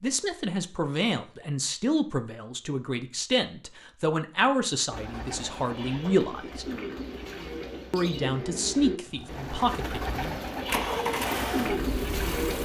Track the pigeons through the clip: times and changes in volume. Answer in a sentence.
The pigeons can be heard from 4.9 to 12.6 s, getting louder.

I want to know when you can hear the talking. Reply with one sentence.
You can hear the talking from 0.0 to 6.7 s and from 7.9 to 10.4 s.